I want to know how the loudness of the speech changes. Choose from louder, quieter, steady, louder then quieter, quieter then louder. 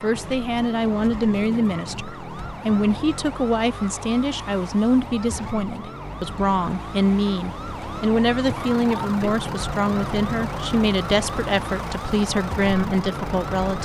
steady.